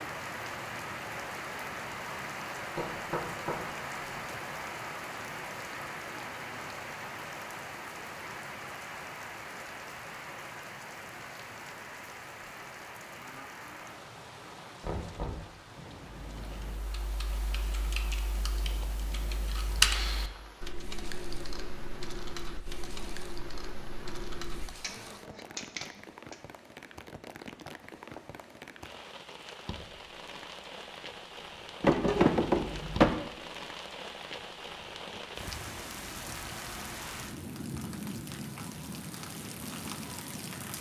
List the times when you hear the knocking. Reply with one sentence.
The knocking can be heard from 2.8 to 3.6 s, from 14.8 to 15.4 s and from 31.8 to 33.1 s.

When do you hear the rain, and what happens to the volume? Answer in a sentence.
The rain can be heard from 0.0 to 40.7 s, getting quieter then louder.